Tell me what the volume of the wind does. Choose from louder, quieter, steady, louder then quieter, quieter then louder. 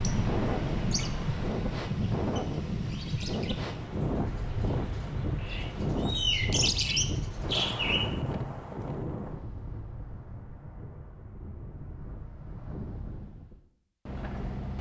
quieter.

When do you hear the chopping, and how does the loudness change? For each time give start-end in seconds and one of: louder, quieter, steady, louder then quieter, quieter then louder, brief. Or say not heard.
not heard.